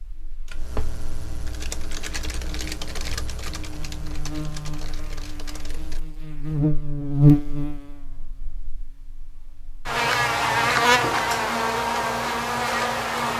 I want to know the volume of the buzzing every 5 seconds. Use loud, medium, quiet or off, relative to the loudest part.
quiet, loud, loud.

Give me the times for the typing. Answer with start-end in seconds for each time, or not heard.
0.5-6.0.